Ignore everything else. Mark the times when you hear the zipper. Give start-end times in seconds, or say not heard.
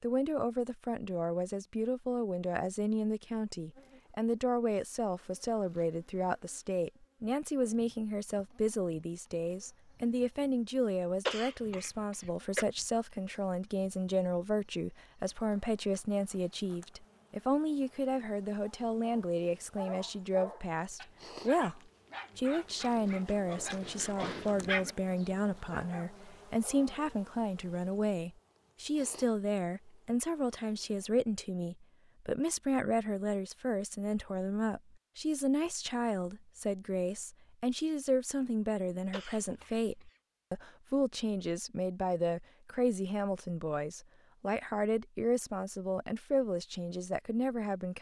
not heard.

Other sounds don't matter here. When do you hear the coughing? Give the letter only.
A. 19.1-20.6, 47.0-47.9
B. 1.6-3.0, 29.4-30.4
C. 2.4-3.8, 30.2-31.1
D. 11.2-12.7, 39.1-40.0
D.